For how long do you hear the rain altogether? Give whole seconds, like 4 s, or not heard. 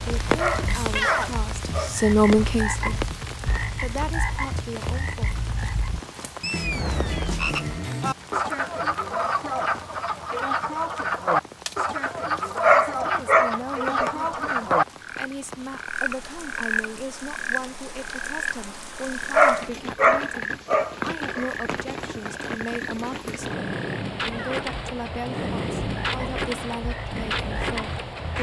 28 s.